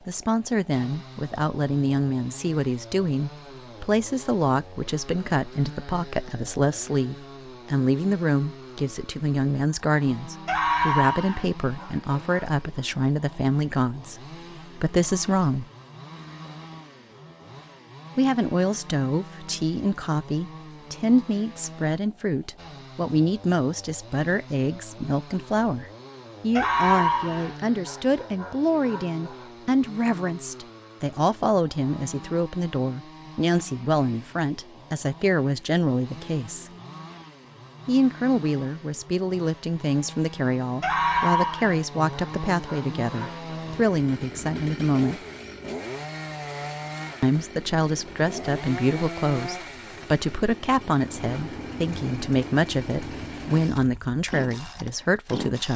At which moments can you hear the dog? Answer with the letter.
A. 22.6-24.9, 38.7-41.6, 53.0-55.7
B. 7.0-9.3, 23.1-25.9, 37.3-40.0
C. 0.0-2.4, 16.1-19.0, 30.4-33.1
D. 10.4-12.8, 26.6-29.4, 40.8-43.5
D.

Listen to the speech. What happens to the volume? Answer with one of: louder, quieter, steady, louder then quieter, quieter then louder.
steady.